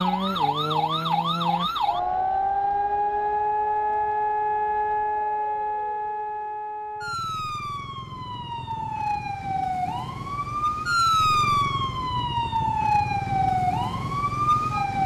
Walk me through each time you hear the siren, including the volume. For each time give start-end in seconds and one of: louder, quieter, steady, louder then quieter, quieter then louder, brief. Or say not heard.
0.0-15.0 quieter then louder.